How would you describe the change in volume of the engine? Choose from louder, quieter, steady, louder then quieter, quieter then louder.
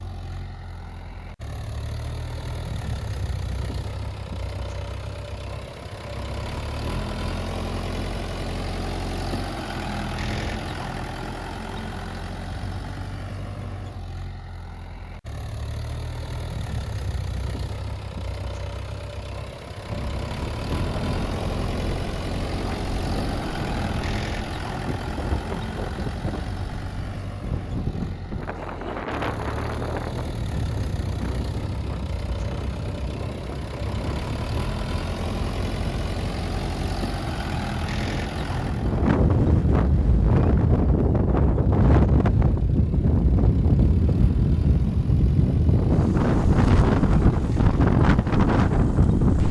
quieter.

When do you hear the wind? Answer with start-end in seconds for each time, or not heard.
19.9-49.4.